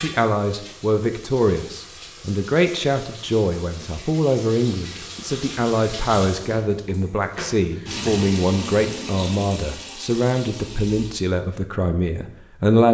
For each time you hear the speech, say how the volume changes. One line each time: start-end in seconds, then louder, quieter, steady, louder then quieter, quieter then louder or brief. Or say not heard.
0.0-12.8 steady.